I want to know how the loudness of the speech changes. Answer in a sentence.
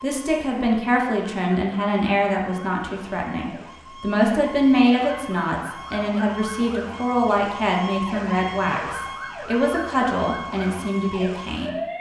The volume of the speech stays about the same.